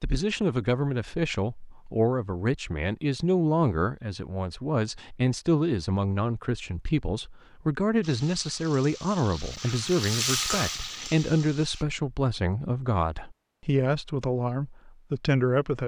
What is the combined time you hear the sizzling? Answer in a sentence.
You can hear the sizzling for 4 seconds altogether.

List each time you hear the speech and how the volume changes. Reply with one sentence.
The speech can be heard from 0.0 to 15.8 s, at a steady volume.